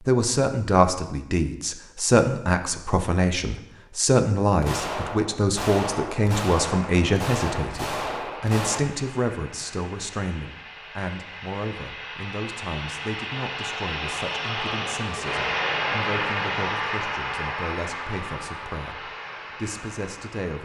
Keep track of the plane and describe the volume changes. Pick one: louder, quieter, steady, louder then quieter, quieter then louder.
louder then quieter.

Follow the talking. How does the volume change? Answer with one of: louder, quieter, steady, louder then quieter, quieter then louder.
quieter.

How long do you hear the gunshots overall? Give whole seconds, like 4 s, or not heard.
4 s.